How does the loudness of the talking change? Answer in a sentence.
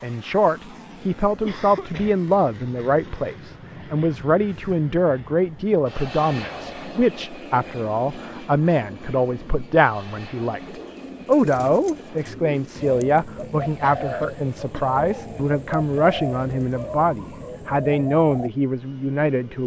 The volume of the talking stays about the same.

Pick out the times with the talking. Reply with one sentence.
You can hear the talking from 0.0 to 19.6 s.